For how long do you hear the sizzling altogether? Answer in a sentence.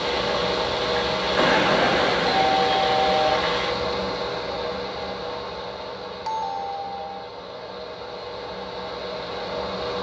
You can hear the sizzling for 4 seconds altogether.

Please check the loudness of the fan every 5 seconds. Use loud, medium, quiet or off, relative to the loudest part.
loud, medium.